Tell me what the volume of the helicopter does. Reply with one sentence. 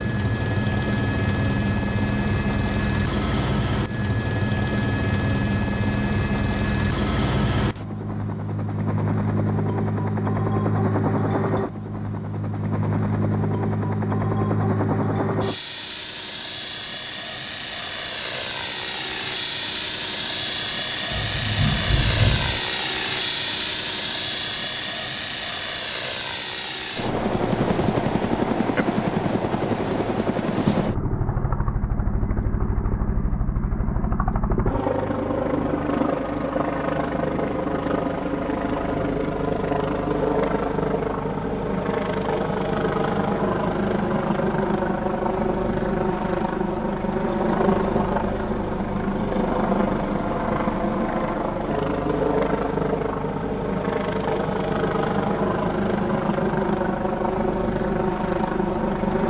The loudness of the helicopter stays about the same.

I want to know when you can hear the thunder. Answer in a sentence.
The thunder can be heard from 21.1 to 22.6 s.